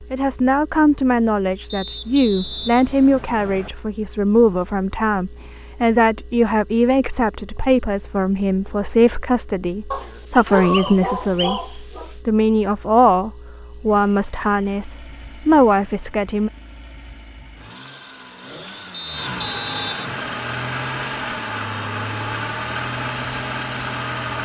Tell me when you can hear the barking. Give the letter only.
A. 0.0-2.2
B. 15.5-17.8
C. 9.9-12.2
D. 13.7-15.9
C.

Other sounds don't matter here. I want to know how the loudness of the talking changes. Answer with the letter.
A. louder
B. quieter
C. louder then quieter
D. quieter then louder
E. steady
E.